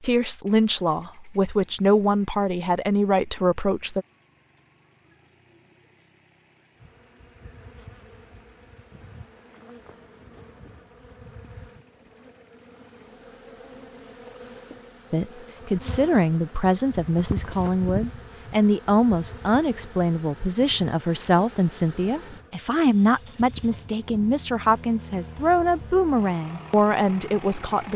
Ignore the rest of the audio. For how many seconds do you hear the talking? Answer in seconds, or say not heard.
17 s.